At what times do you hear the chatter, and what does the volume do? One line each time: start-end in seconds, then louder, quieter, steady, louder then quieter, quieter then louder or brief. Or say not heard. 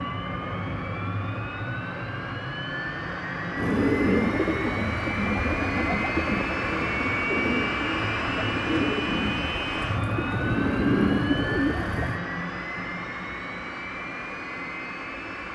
not heard.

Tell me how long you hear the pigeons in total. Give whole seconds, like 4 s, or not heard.
9 s.